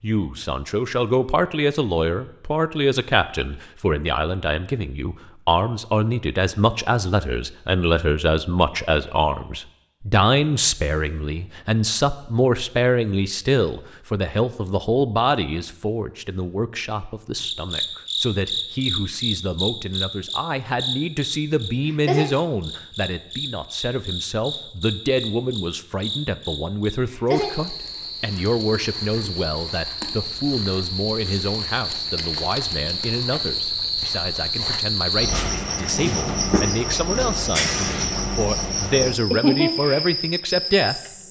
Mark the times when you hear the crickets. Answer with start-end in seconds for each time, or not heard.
17.4-41.2.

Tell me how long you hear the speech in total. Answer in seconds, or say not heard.
41 s.